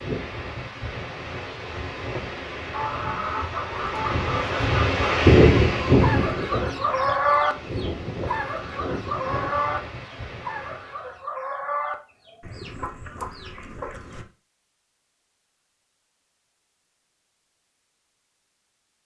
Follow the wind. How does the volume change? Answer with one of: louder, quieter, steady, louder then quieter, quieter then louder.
louder then quieter.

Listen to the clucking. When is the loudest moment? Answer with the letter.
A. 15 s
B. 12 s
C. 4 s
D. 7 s
D.